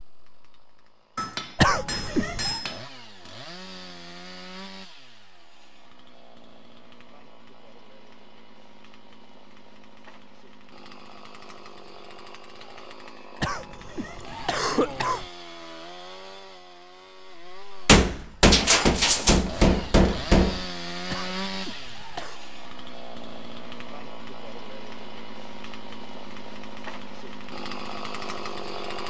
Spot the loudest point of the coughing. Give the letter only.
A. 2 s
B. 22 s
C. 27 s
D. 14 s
A.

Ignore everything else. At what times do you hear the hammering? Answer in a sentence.
You can hear the hammering from 1.1 to 2.9 s and from 17.9 to 20.6 s.